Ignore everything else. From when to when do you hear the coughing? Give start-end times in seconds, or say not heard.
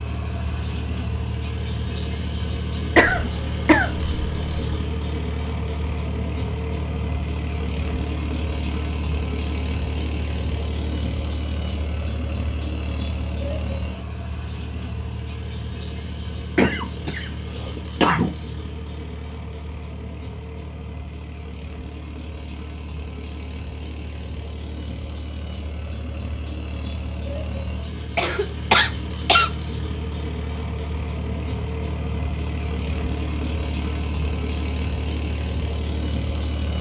3.0-4.8, 16.6-18.4, 28.1-29.5.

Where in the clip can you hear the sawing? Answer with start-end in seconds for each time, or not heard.
not heard.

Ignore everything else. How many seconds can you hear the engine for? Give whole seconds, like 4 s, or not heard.
37 s.